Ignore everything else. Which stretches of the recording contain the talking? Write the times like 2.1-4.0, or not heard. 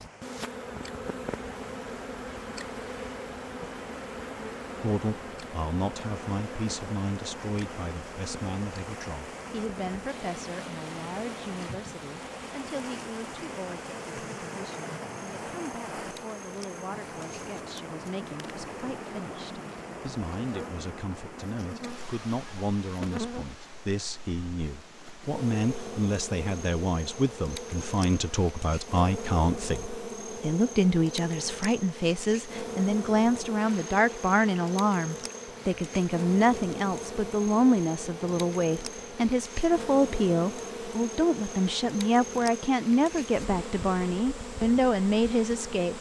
4.8-45.9.